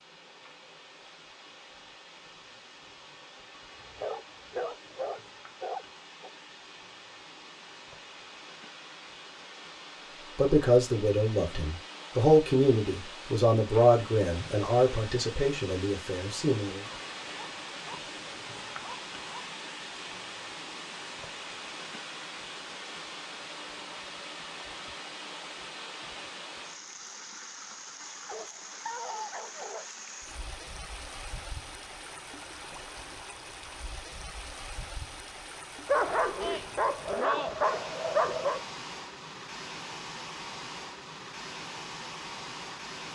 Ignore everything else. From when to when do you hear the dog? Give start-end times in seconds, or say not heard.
3.7-6.3, 16.9-19.5, 28.2-29.9, 35.9-38.6.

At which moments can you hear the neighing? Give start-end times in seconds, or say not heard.
not heard.